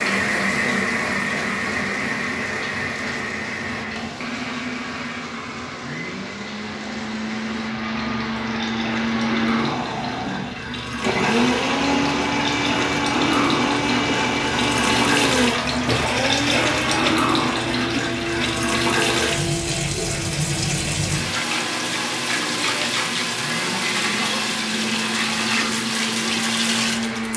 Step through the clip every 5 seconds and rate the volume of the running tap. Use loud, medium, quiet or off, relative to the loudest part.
medium, medium, loud, loud, loud, loud.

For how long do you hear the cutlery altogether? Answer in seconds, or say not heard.
not heard.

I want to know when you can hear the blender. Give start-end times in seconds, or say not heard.
0.0-27.3.